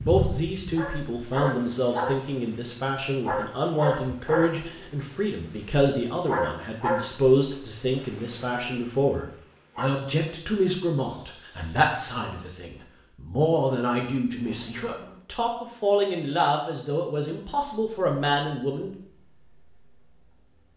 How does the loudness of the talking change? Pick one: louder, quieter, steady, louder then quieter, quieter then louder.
steady.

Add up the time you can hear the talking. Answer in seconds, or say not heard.
19 s.